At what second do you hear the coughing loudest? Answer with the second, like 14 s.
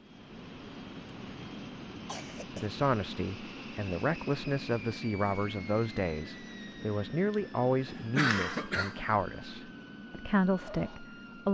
8 s.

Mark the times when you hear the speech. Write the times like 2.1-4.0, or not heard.
2.5-11.5.